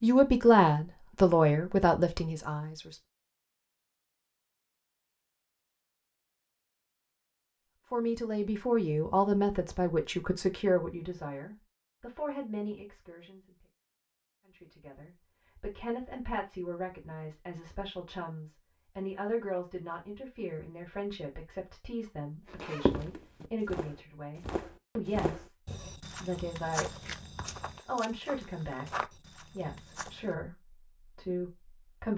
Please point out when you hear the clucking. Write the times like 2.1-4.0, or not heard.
not heard.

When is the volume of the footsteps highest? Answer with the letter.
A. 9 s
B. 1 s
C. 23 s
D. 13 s
C.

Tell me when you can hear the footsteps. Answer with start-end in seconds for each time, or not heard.
22.5-30.2.